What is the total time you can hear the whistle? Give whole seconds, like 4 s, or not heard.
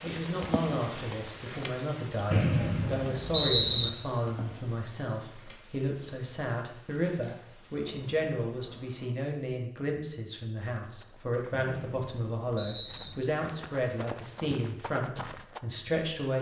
3 s.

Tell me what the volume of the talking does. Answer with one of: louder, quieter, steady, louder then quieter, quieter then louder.
steady.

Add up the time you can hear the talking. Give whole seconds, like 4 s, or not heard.
16 s.